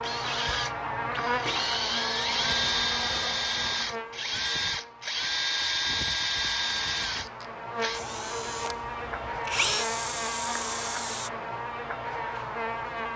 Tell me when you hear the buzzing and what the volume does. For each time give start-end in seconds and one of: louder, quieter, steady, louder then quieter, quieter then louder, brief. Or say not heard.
0.0-13.1 quieter then louder.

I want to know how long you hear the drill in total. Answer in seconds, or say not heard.
11 s.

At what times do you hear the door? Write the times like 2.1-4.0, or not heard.
not heard.